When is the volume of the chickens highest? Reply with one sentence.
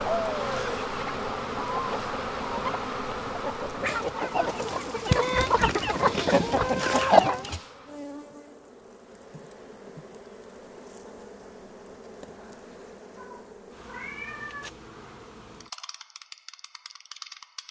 The volume of the chickens peaks at 7 seconds.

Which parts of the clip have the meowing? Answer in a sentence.
You can hear the meowing from 0.3 to 0.9 s and from 13.2 to 14.7 s.